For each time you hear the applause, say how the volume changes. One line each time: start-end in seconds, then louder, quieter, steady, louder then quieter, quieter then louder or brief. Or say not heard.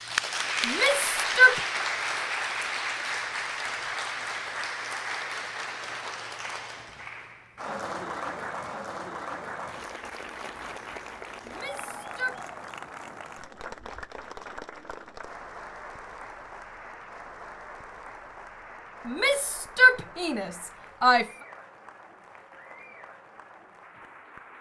0.0-24.5 quieter.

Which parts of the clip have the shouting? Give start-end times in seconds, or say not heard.
0.7-1.6, 11.4-12.4, 19.1-21.2.